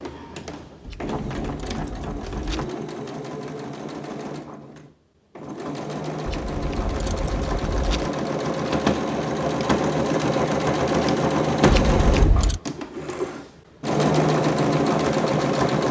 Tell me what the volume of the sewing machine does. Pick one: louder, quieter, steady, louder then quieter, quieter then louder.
louder.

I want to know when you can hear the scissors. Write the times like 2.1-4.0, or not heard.
0.8-2.7, 6.2-8.1, 11.7-12.6.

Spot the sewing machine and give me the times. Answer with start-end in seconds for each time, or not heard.
0.0-15.8.